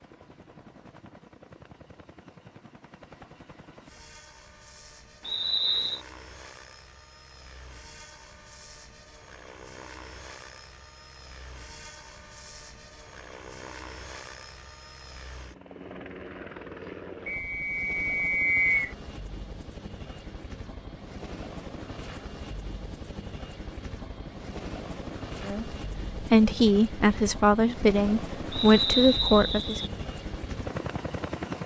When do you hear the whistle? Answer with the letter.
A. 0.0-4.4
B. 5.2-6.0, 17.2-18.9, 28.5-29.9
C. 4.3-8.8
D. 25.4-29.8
B.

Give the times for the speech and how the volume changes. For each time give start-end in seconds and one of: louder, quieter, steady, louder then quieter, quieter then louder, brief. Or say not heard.
25.4-29.8 steady.